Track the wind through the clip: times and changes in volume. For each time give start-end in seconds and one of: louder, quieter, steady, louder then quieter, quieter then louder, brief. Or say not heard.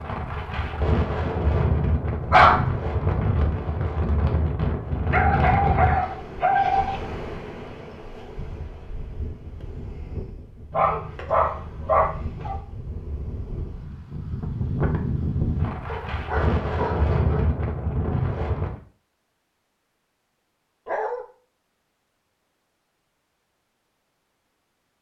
0.0-18.8 quieter then louder.